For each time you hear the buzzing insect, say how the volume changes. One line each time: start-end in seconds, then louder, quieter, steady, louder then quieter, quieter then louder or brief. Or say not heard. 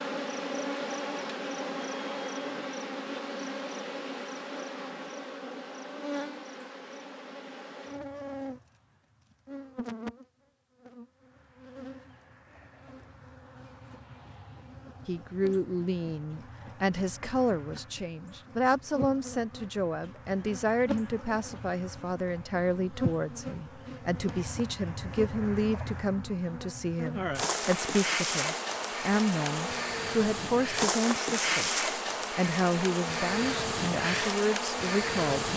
0.0-35.5 quieter then louder.